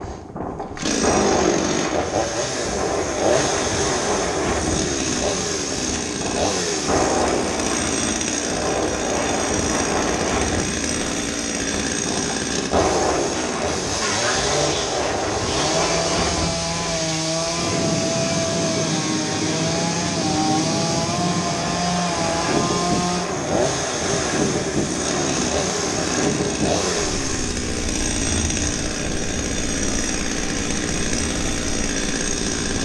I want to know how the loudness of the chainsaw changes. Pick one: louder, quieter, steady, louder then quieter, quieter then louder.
steady.